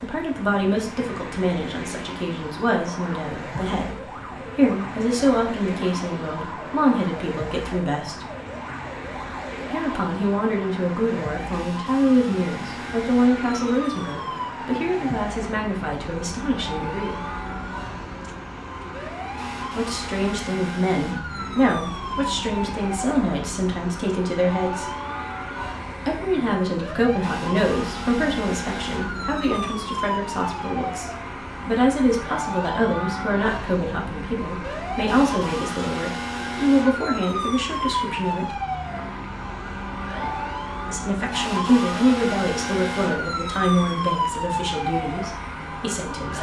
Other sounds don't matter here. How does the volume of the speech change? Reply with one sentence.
The loudness of the speech stays about the same.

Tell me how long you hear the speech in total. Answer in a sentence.
The speech can be heard for 39 seconds in total.